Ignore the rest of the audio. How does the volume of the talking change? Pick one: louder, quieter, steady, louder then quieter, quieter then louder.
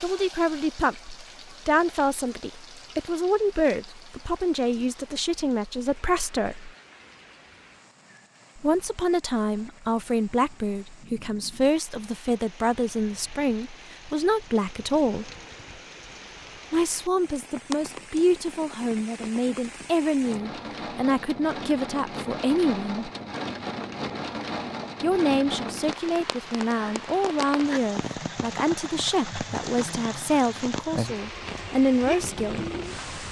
steady.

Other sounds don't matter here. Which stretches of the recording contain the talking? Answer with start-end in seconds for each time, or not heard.
0.0-6.7, 8.6-15.3, 16.7-23.1, 25.0-32.6.